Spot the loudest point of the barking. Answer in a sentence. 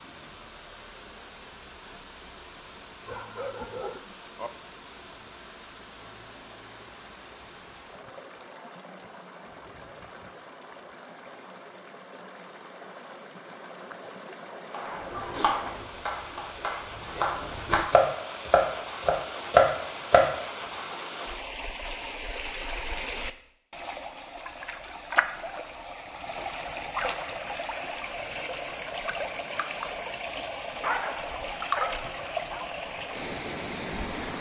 The volume of the barking peaks at 31 seconds.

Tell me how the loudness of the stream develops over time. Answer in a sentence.
The volume of the stream goes up.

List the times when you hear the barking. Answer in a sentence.
The barking can be heard from 3.0 to 4.5 s and from 30.8 to 32.6 s.